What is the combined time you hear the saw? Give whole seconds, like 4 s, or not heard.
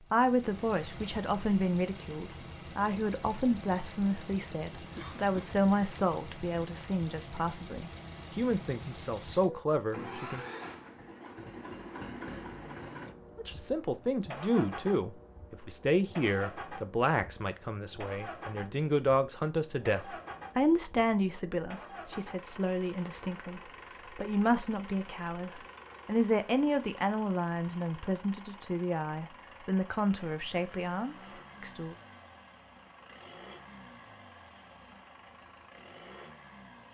not heard.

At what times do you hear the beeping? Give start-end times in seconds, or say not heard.
not heard.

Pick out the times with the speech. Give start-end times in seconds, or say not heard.
0.1-10.4, 13.3-31.9.